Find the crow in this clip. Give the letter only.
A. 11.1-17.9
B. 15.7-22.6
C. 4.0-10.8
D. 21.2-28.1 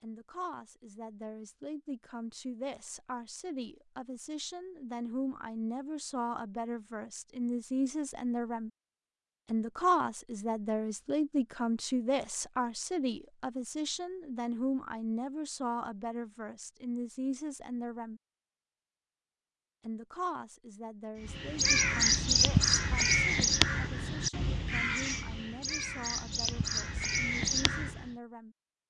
D.